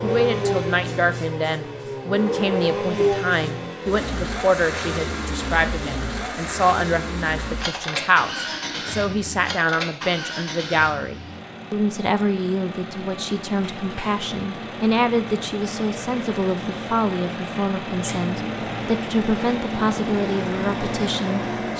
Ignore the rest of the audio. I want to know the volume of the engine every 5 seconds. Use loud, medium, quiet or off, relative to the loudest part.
loud, loud, medium, loud, loud.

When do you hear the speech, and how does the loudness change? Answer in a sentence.
The speech can be heard from 0.0 to 21.7 s, at a steady volume.